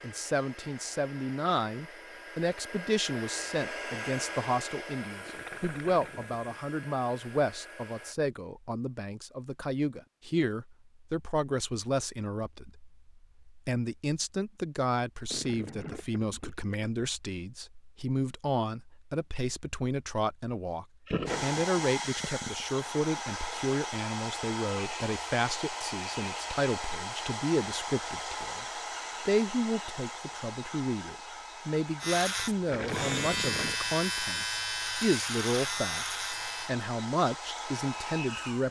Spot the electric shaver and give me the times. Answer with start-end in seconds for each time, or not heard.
32.0-36.8.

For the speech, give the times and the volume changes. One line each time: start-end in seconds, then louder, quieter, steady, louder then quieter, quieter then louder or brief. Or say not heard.
0.0-38.6 steady.